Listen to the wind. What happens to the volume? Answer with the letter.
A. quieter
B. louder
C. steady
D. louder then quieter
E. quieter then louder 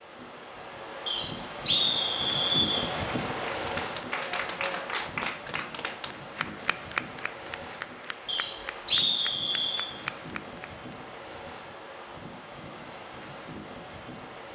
A.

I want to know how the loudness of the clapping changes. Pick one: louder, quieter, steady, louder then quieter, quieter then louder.
quieter.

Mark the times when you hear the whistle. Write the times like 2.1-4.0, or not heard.
1.1-2.9, 8.2-9.8.